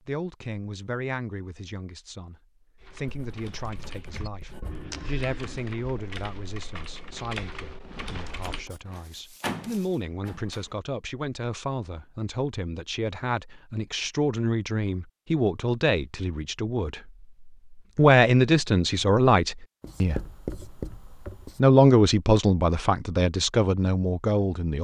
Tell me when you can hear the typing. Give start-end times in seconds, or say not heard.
2.8-8.7.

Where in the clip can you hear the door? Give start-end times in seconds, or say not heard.
8.8-10.7.